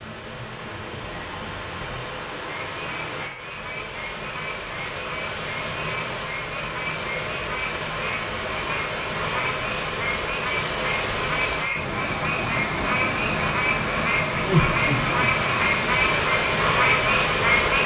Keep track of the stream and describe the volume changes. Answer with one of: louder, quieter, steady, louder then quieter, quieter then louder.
louder.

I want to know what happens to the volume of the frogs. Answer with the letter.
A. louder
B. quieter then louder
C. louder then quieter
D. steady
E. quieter
A.